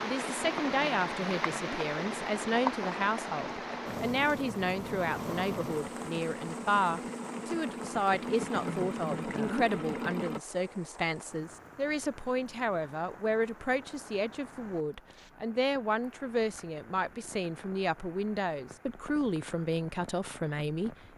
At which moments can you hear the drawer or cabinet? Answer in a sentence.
You can't hear the drawer or cabinet here.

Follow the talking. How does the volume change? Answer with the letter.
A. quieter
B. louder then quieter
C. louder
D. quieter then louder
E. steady
E.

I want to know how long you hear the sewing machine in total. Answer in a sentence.
You can hear the sewing machine for 10 seconds altogether.